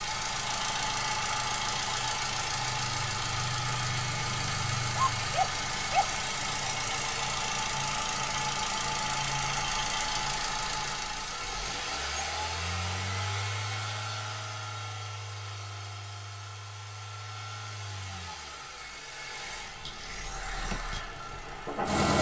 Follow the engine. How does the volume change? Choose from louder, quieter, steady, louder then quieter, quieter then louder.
quieter.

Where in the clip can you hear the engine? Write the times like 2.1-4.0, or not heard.
0.0-22.1.